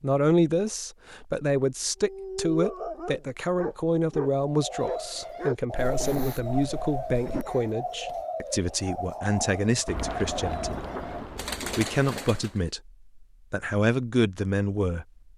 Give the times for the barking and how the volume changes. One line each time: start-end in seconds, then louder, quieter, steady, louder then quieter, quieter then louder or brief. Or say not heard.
2.0-7.7 quieter.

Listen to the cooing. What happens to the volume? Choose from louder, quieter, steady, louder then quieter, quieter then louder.
steady.